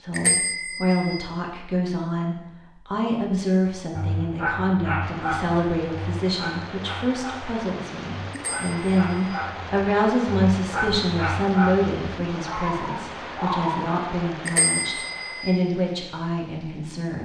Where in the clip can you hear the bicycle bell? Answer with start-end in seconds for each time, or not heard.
0.1-1.2, 8.3-9.4, 14.4-15.6.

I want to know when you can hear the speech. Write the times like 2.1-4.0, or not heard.
0.0-17.2.